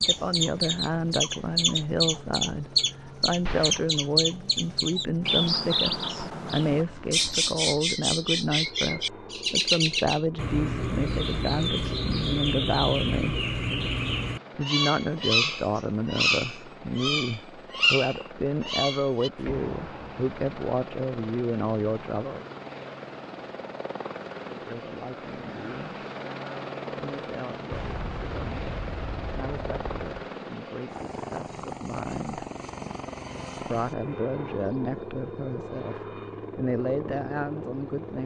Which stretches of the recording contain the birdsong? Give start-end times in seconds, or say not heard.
0.0-19.3.